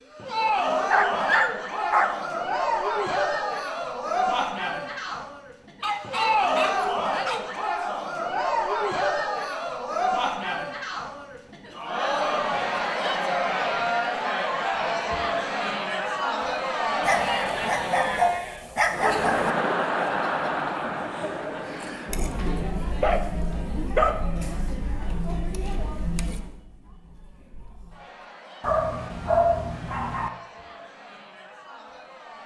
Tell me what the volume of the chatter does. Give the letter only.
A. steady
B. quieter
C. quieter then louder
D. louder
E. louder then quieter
B.